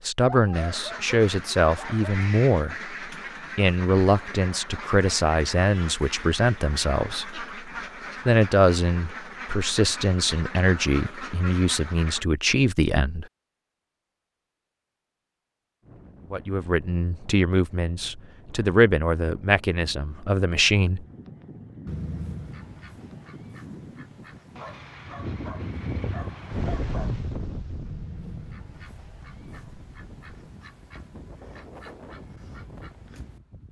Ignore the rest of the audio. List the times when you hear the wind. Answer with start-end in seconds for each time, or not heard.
15.8-33.6.